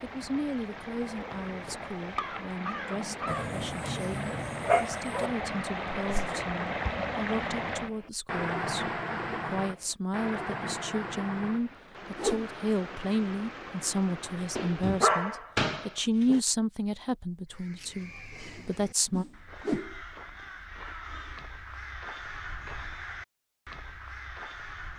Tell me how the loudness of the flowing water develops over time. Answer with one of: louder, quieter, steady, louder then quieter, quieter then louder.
louder then quieter.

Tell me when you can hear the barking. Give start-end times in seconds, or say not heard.
3.2-5.3, 14.6-16.4.